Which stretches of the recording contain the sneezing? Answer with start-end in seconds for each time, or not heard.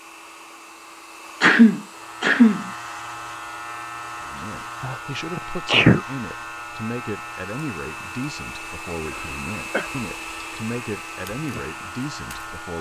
1.4-2.7, 4.8-6.0, 9.1-9.9.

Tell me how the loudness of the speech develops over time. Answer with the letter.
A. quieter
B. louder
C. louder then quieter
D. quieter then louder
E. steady
E.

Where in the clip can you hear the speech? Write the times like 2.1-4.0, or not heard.
4.2-12.7.